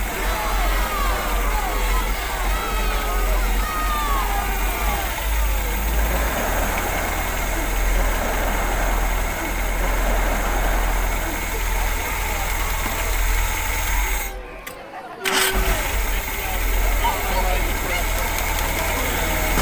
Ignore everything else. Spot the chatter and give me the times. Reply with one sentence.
You can hear the chatter from 0.1 to 19.5 s.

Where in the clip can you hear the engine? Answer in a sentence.
You can hear the engine from 0.0 to 19.5 s.